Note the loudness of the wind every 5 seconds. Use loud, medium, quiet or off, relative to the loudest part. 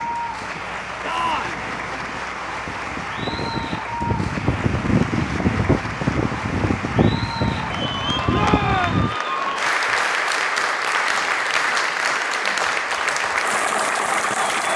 medium, loud, off.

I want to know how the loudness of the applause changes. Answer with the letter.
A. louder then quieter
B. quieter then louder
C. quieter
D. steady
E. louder
E.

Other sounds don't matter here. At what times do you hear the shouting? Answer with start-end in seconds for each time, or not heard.
1.0-1.6, 8.3-9.0.